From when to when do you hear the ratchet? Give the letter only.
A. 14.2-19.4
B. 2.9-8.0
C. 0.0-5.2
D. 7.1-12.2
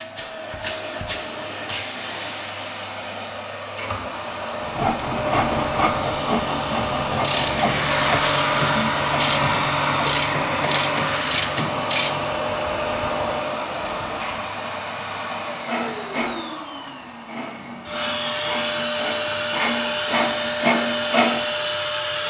D.